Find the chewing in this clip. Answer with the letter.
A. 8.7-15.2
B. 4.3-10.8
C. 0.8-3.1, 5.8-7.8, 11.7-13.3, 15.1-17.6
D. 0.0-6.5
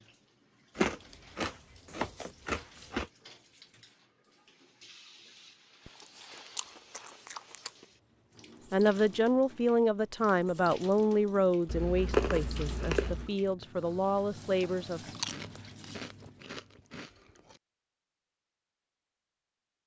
C.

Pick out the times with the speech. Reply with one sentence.
You can hear the speech from 8.7 to 15.2 s.